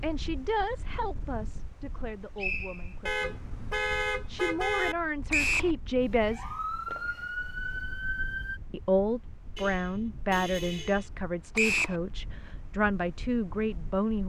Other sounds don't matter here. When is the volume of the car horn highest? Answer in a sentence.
The volume of the car horn peaks at 4 seconds.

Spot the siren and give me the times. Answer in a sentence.
You can hear the siren from 6.0 to 8.6 s.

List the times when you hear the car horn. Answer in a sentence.
The car horn can be heard from 3.0 to 5.0 s and from 9.6 to 11.1 s.